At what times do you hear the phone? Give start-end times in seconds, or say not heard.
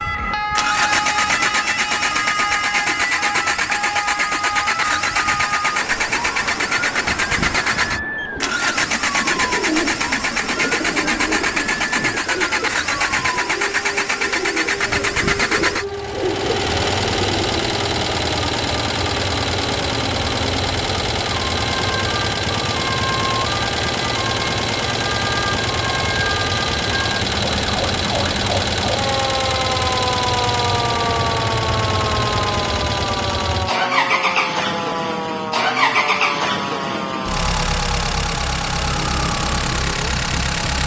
not heard.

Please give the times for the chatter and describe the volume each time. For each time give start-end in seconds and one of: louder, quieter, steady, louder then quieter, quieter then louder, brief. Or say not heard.
not heard.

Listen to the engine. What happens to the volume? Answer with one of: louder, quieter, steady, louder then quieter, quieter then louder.
steady.